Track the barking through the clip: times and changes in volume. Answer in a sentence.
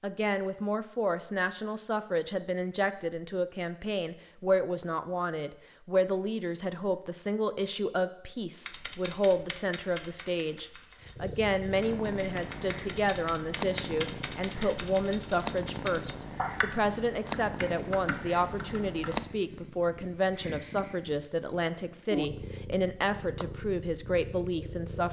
The barking can't be heard in this clip.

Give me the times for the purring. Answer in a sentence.
The purring can be heard from 11.0 to 25.0 s.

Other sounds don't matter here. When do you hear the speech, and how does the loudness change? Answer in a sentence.
The speech can be heard from 0.0 to 25.0 s, at a steady volume.